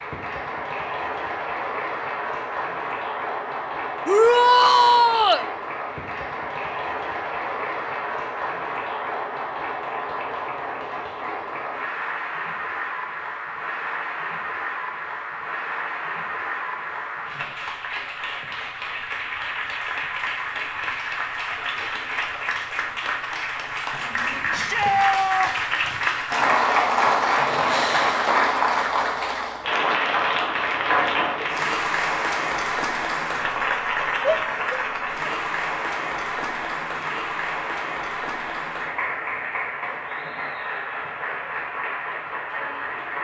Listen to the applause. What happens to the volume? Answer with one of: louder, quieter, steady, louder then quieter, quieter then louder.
louder then quieter.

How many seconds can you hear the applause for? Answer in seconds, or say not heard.
43 s.